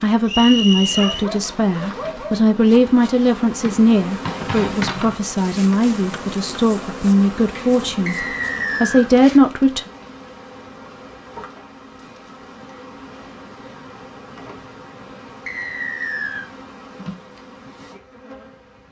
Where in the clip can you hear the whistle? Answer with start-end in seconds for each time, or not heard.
0.2-1.2, 8.1-9.1, 15.4-16.5.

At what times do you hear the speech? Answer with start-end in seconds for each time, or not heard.
0.0-9.8.